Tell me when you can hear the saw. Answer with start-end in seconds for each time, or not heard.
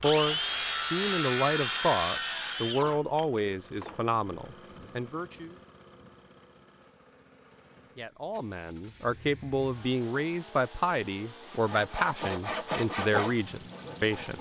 0.0-4.0, 11.5-14.3.